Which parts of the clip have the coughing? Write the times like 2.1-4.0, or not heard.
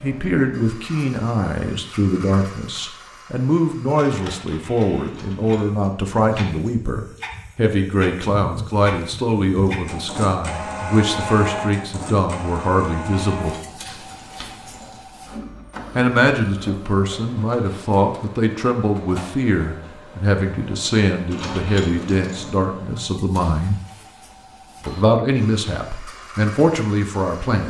not heard.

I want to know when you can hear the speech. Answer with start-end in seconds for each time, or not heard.
0.0-13.6, 15.9-23.8, 24.9-27.6.